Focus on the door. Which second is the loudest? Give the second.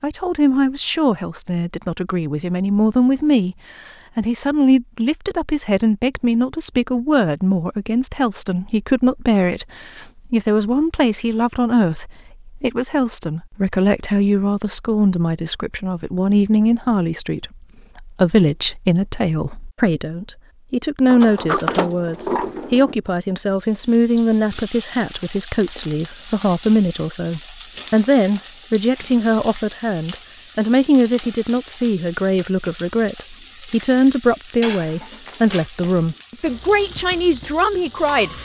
22 s.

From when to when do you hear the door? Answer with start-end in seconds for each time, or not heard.
21.1-22.9.